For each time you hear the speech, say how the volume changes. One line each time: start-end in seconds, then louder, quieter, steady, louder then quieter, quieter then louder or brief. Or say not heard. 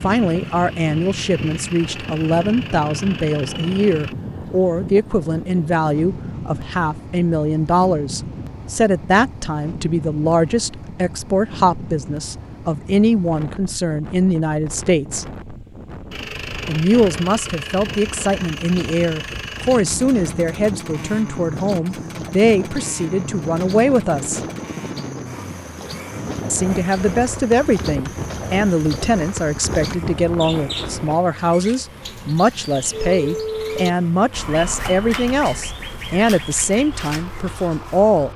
0.0-15.3 steady
16.6-24.4 steady
26.5-38.3 steady.